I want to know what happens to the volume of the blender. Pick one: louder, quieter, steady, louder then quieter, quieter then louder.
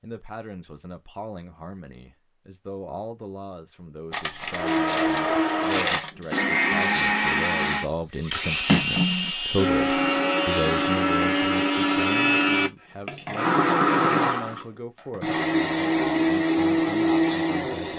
steady.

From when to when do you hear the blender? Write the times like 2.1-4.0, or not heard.
4.5-17.9.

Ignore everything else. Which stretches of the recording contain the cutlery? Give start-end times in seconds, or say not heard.
4.1-9.3.